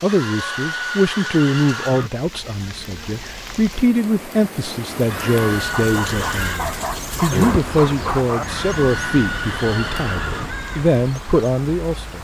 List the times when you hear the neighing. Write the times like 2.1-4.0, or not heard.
0.1-2.1, 5.1-6.6, 8.4-10.5.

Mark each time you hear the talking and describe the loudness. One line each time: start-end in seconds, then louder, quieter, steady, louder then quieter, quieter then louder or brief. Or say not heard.
0.0-12.1 steady.